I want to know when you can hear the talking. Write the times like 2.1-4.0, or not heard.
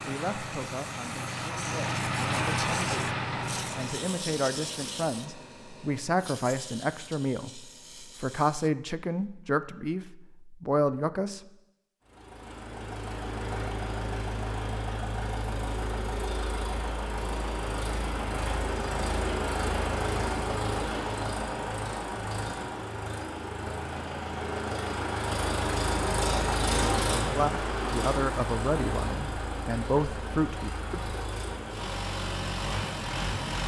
0.0-11.4, 27.2-31.1.